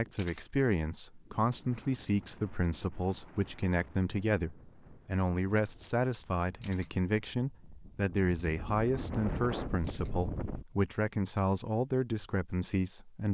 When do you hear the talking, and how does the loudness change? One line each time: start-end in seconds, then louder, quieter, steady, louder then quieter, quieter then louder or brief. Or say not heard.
0.0-13.3 steady.